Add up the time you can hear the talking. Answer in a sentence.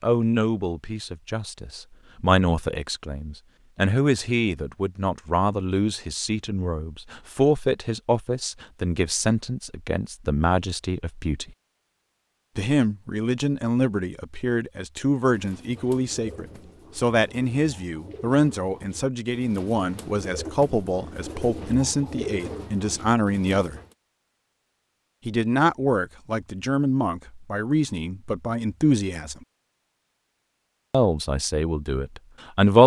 You can hear the talking for 29 seconds altogether.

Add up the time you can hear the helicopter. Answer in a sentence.
The helicopter can't be heard in this clip.